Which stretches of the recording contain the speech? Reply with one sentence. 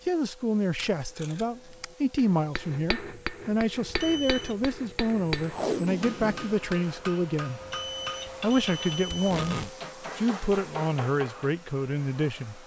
The speech can be heard from 0.1 to 7.6 s and from 8.4 to 12.6 s.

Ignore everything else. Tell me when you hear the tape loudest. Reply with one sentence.
The volume of the tape peaks at 6 seconds.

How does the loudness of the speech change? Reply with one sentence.
The volume of the speech stays about the same.